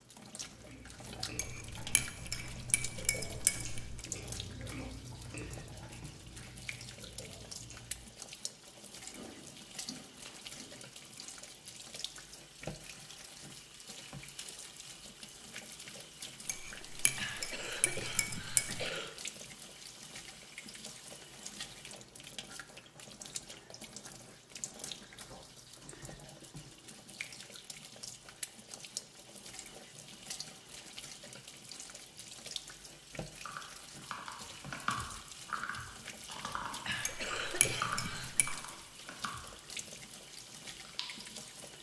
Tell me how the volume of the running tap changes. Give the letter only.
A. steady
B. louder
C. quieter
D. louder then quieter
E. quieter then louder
A.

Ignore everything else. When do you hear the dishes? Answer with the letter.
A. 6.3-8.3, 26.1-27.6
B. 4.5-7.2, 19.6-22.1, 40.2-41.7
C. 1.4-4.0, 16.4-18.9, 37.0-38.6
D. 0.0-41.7
C.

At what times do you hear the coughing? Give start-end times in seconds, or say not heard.
17.1-19.1, 36.9-38.5.